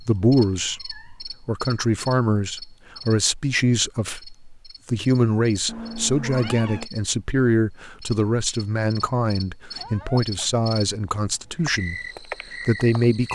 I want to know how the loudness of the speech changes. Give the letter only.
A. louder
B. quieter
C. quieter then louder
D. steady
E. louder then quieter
D.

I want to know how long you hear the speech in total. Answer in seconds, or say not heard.
13 s.